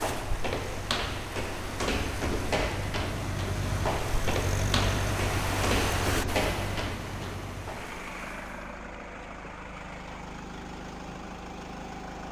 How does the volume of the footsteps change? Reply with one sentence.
The loudness of the footsteps stays about the same.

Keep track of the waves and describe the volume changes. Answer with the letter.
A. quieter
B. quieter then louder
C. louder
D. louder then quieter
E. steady
D.